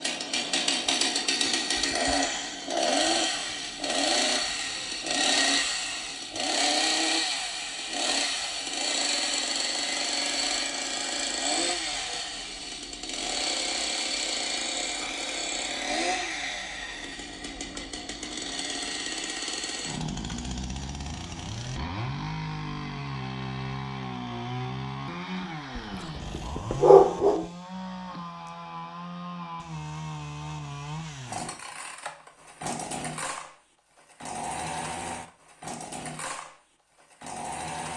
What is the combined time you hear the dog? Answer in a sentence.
You can hear the dog for 2 seconds altogether.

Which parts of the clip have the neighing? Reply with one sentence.
You can't hear the neighing here.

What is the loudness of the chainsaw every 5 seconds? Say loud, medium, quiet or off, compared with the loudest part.
loud, loud, loud, medium, medium, medium, medium, medium.